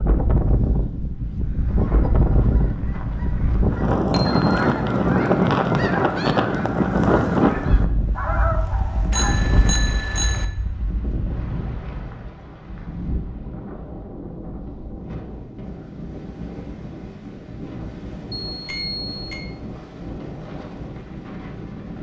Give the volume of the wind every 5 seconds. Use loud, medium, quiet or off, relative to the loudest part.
loud, loud, quiet, quiet, quiet.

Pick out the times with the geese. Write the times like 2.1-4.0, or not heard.
1.6-9.3.